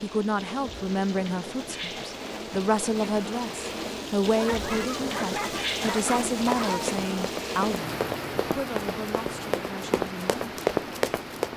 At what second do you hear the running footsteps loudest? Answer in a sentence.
The loudest moment of the running footsteps is at 11 seconds.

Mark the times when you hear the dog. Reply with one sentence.
The dog can be heard from 4.3 to 6.9 s.